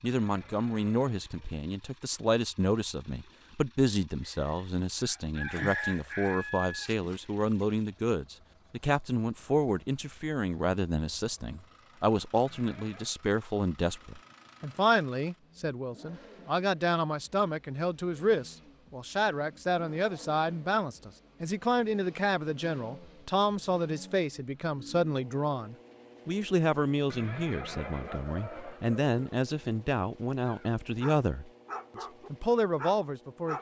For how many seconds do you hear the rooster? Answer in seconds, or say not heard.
5 s.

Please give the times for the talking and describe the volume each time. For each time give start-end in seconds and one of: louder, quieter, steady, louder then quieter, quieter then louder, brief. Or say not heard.
0.0-33.5 steady.